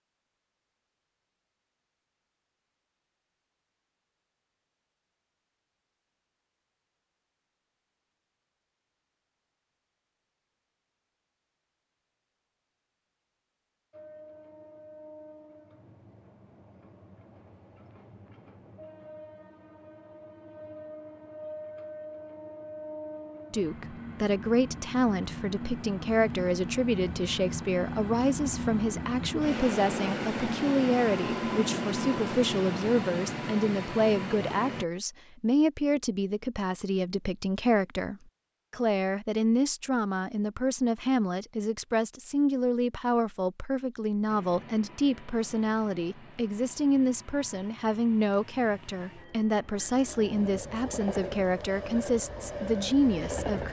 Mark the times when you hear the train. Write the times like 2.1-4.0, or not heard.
13.9-34.9, 44.2-53.6.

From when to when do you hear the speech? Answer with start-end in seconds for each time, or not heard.
23.5-53.6.